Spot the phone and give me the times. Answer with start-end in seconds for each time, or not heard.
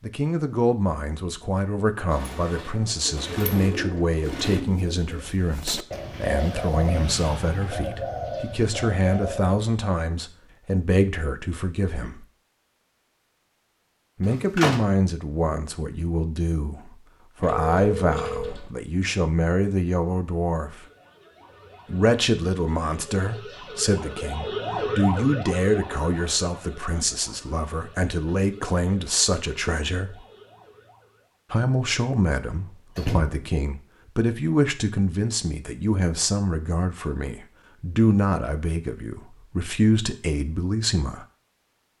17.4-18.7.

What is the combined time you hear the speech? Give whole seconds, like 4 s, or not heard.
37 s.